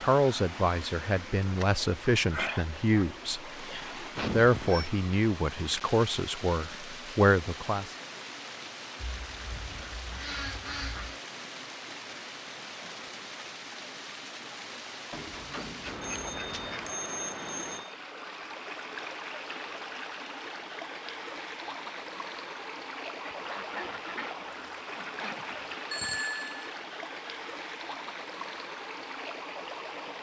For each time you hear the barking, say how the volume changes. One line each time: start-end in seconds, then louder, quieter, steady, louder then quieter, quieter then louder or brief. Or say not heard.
not heard.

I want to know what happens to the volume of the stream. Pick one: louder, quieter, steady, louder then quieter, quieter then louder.
steady.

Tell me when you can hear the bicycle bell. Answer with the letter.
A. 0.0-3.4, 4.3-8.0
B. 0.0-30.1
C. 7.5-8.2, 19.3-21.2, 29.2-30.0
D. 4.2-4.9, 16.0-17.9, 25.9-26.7
D.